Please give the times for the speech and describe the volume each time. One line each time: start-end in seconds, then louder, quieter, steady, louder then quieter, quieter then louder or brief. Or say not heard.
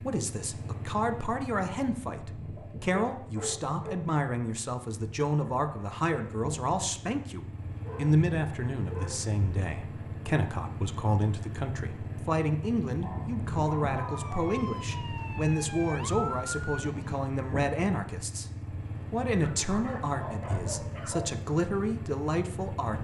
0.0-22.9 steady.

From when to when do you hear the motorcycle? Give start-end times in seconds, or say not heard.
0.0-22.9.